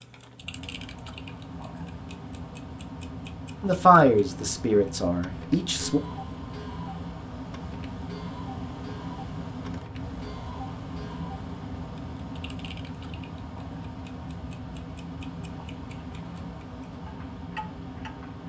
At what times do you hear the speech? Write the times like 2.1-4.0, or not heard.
3.6-6.0.